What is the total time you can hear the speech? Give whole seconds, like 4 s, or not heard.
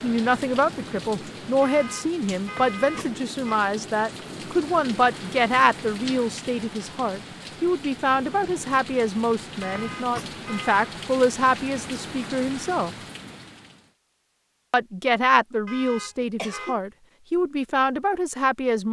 17 s.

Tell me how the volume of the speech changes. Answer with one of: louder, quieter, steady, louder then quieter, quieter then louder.
steady.